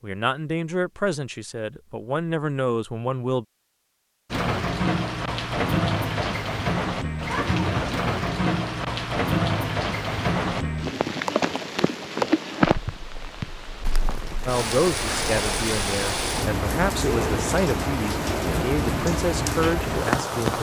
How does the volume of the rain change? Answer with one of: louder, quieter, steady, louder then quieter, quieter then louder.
steady.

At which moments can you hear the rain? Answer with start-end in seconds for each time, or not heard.
4.3-20.5.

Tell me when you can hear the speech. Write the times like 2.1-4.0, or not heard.
0.0-3.5, 14.4-20.5.